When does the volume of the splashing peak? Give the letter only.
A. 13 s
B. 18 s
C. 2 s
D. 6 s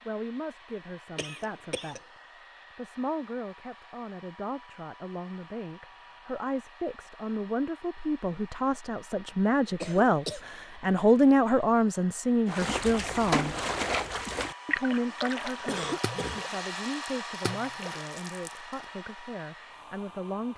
A.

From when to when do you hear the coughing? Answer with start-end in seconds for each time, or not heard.
1.1-2.0, 9.7-10.4, 15.7-16.4.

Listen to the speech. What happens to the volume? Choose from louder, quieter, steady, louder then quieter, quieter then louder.
louder then quieter.